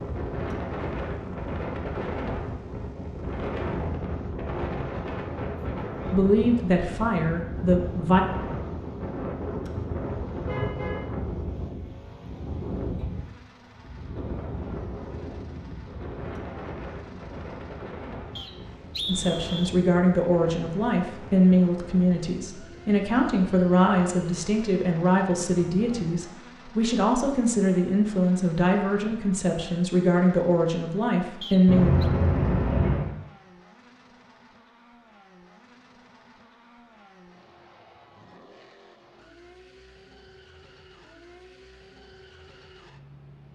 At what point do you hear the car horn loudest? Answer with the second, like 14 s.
32 s.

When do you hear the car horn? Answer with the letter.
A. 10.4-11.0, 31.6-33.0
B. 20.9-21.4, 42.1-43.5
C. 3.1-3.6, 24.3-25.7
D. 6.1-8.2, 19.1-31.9
A.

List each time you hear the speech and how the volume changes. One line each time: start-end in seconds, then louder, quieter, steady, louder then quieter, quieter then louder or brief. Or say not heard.
6.1-8.2 brief
19.1-31.9 steady.